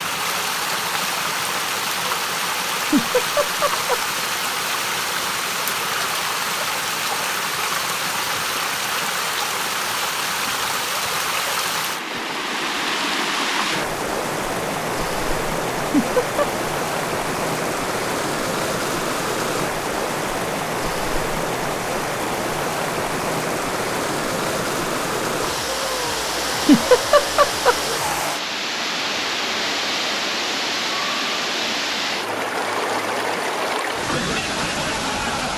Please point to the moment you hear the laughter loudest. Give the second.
27 s.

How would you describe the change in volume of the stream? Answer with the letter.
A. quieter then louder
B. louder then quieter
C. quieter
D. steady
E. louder
D.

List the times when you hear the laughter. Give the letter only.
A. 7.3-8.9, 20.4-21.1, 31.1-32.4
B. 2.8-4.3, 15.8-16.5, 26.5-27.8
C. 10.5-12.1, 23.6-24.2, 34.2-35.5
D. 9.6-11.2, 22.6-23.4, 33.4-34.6
B.